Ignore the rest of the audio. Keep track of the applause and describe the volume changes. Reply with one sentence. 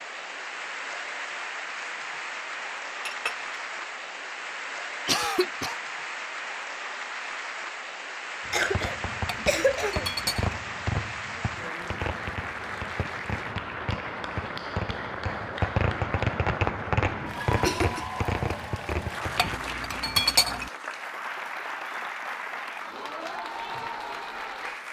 The loudness of the applause stays about the same.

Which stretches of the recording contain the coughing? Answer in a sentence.
The coughing can be heard from 5.0 to 5.8 s, from 8.5 to 10.3 s and from 17.4 to 18.1 s.